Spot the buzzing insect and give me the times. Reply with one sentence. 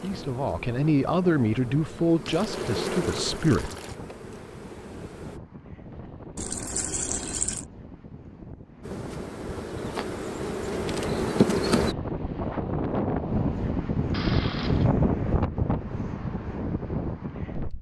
The buzzing insect can be heard from 0.0 to 5.4 s and from 8.8 to 11.9 s.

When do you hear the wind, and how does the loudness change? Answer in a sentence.
You can hear the wind from 0.0 to 17.7 s, getting louder.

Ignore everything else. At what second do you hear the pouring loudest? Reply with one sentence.
The volume of the pouring peaks at 7 seconds.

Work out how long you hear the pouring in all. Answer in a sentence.
The pouring can be heard for 4 seconds in total.